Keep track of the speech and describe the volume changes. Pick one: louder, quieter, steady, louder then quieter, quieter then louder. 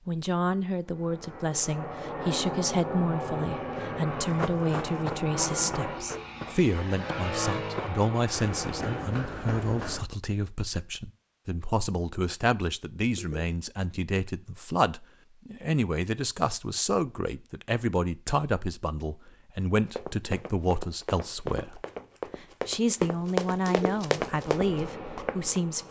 steady.